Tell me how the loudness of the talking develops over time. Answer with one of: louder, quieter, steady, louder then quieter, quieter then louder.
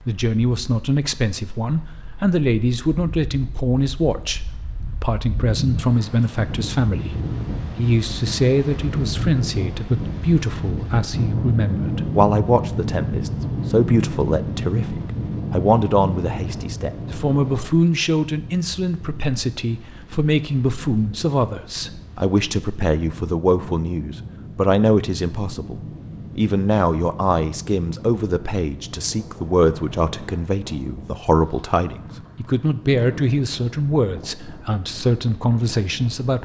steady.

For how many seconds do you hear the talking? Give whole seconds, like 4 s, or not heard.
36 s.